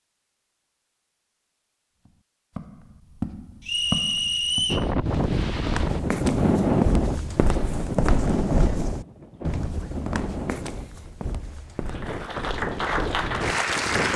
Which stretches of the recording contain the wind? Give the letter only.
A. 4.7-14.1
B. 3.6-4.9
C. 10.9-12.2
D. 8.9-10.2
A.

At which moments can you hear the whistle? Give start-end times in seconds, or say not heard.
3.6-4.9.